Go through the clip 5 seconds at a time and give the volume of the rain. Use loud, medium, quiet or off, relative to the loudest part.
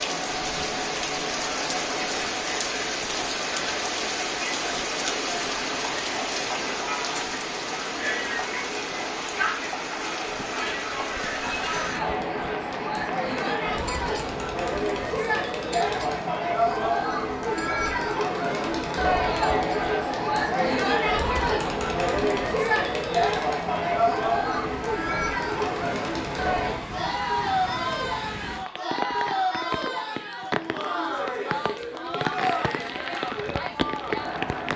loud, loud, medium, medium, medium, medium, loud.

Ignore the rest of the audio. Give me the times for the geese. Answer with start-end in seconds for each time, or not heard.
not heard.